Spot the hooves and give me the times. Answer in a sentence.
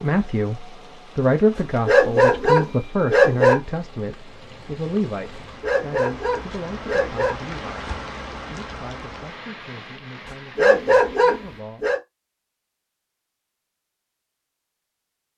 You can't hear the hooves here.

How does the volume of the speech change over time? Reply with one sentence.
The volume of the speech goes down.